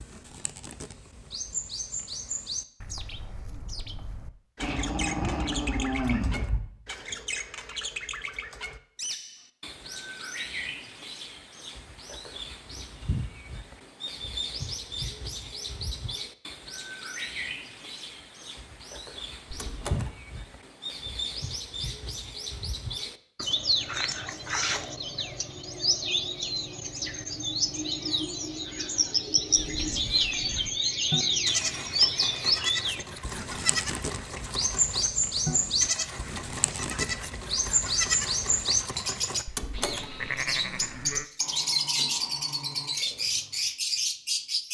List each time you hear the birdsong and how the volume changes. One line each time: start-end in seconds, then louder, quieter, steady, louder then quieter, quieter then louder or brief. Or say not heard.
0.0-44.7 louder.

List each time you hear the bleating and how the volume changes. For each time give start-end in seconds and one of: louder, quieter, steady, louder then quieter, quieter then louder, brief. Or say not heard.
29.5-41.3 steady.